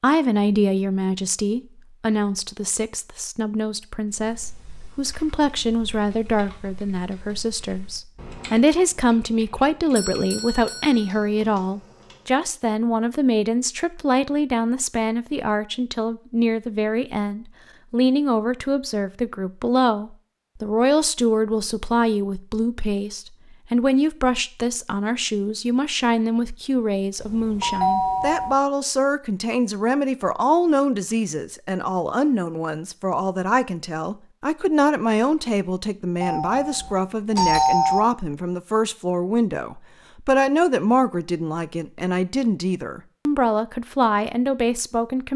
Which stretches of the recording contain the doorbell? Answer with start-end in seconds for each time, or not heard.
9.9-11.2, 27.1-28.6, 36.2-38.0.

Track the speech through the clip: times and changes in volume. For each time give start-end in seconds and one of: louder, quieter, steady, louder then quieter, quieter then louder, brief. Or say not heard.
0.0-45.3 steady.